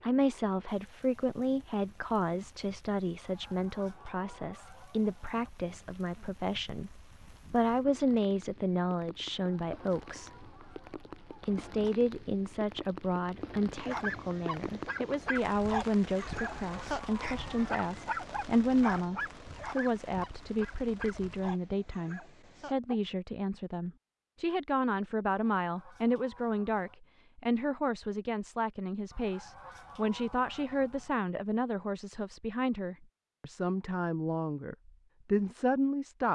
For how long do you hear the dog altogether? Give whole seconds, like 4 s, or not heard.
9 s.